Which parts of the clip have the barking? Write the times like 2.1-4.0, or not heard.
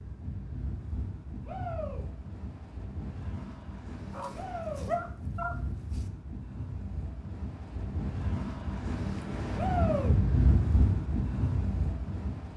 4.1-6.0.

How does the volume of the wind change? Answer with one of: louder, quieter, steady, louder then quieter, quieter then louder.
louder.